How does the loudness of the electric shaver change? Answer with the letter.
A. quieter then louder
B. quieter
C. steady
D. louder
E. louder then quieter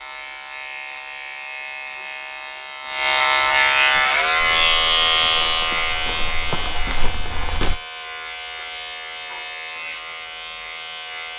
E.